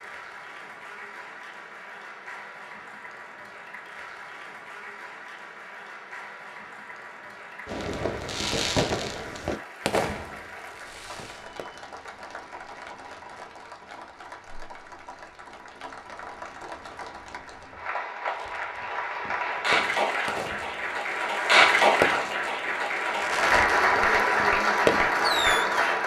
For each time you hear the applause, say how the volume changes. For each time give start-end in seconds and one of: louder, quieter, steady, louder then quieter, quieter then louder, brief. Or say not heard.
0.0-26.0 louder.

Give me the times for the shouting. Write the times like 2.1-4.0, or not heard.
not heard.